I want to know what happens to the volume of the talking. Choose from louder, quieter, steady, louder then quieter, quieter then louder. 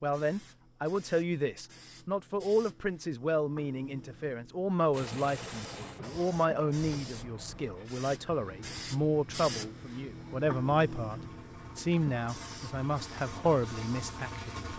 steady.